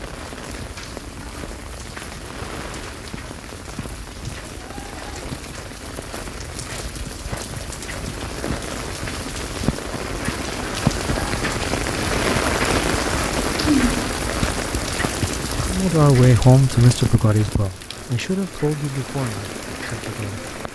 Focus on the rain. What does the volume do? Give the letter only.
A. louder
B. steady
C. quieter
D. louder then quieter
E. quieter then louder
D.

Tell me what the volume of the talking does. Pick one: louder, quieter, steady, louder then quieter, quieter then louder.
quieter.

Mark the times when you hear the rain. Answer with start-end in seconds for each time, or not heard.
0.0-20.6.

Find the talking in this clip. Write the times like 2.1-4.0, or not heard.
15.7-20.4.